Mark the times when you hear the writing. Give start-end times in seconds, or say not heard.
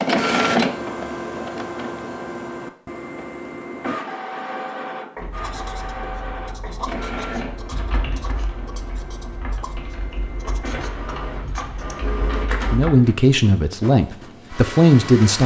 5.2-12.0.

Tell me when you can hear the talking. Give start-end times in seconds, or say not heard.
12.7-15.4.